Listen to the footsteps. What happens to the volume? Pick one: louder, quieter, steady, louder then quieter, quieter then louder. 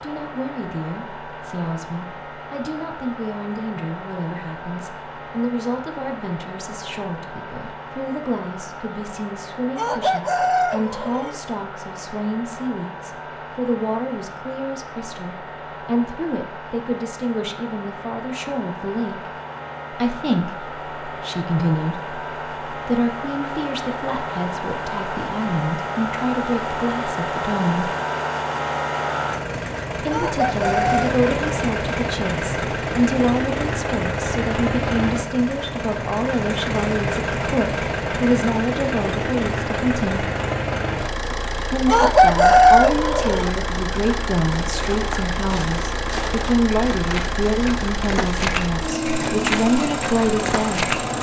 louder then quieter.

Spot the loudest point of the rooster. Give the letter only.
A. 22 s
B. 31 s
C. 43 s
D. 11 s
C.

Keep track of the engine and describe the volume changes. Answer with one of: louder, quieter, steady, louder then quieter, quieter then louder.
louder.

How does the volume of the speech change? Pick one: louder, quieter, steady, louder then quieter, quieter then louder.
louder.